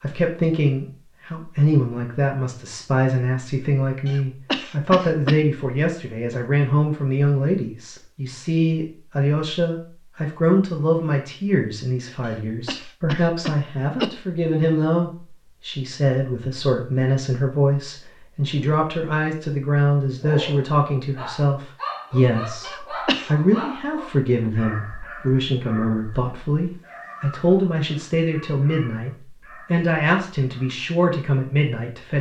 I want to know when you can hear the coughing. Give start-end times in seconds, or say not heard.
4.0-5.4, 12.2-14.1, 22.6-23.4.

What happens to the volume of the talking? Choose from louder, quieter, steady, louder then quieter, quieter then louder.
steady.